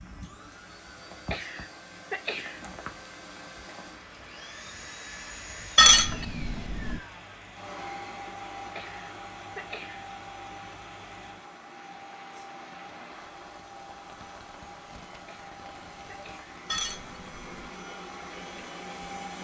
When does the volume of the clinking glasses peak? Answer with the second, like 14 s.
6 s.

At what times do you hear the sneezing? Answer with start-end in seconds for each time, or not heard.
1.3-2.6, 8.8-10.1, 15.2-16.5.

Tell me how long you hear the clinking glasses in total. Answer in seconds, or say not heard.
2 s.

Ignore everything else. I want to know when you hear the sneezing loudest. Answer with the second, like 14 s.
2 s.